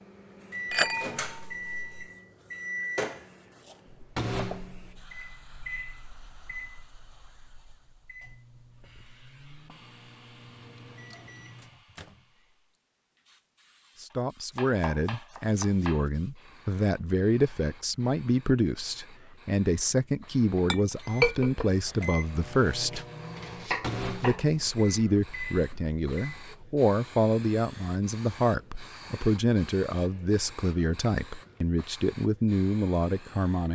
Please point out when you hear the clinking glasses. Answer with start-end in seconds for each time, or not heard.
0.7-2.0, 20.4-21.7.